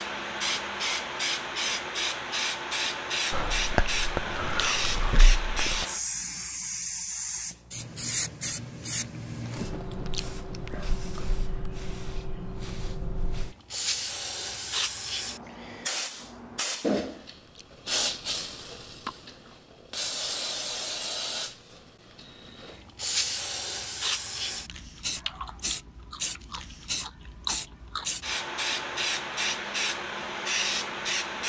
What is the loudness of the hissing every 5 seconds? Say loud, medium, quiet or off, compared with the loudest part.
loud, loud, medium, loud, loud, loud, loud.